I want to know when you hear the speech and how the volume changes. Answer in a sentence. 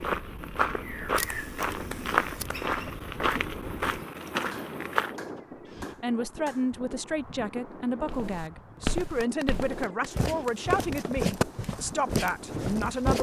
The speech can be heard from 6.0 to 13.1 s, at a steady volume.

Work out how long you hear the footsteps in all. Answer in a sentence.
The footsteps can be heard for 10 seconds in total.